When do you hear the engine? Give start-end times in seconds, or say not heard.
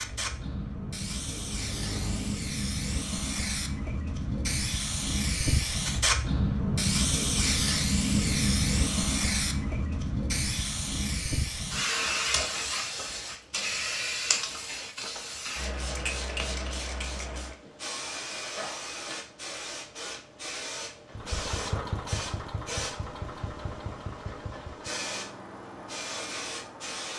0.0-2.5, 21.1-27.1.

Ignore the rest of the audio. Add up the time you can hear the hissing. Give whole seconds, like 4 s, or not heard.
27 s.